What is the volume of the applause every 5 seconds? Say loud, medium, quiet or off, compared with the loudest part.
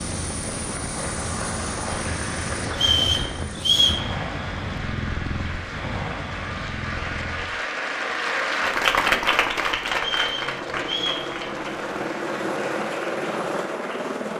medium, loud, medium.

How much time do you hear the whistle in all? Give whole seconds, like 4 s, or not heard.
3 s.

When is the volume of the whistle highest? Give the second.
4 s.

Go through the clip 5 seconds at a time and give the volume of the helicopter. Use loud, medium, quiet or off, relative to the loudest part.
loud, medium, loud.